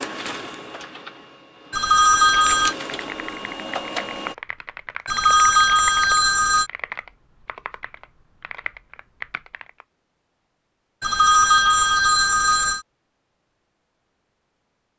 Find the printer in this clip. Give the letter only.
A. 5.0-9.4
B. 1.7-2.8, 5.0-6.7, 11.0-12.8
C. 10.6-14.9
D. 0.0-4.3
D.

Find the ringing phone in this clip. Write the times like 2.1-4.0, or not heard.
1.7-2.8, 5.0-6.7, 11.0-12.8.